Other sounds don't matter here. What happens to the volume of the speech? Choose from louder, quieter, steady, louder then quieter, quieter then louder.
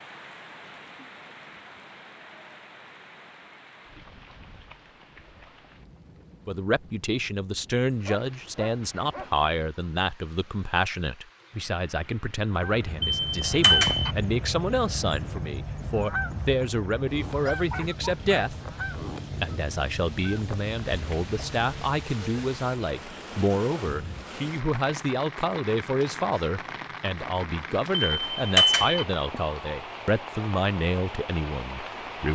steady.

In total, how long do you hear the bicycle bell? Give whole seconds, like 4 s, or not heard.
2 s.